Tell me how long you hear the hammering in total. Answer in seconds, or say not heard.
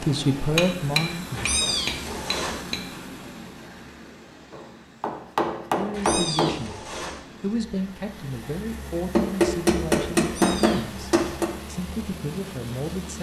7 s.